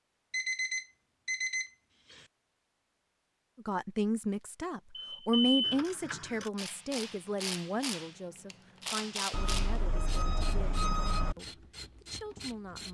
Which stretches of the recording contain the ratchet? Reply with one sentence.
The ratchet can be heard from 5.6 to 12.8 s.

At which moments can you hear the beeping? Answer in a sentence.
You can hear the beeping from 0.3 to 2.2 s, from 5.0 to 5.5 s and from 9.3 to 11.3 s.